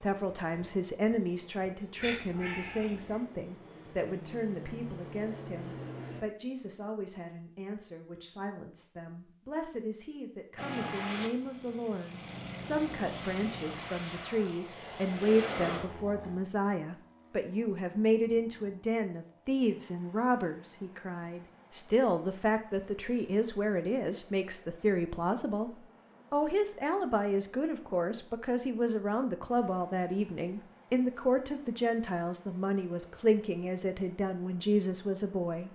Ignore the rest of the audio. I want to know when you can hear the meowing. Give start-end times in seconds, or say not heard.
1.9-3.2.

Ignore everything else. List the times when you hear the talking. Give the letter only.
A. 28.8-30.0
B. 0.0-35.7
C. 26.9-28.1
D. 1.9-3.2
B.